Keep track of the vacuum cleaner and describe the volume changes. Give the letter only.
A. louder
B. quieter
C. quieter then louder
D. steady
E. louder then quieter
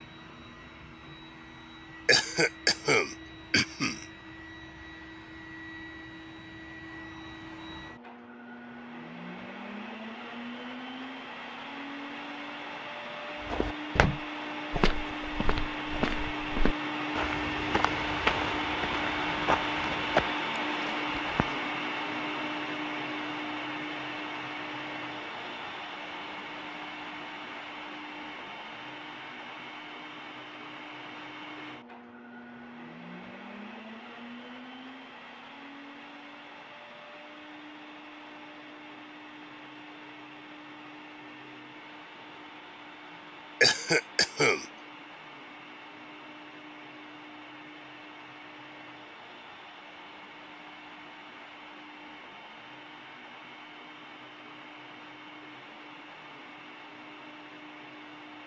E.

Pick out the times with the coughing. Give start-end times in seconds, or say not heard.
2.0-4.0, 43.6-44.6.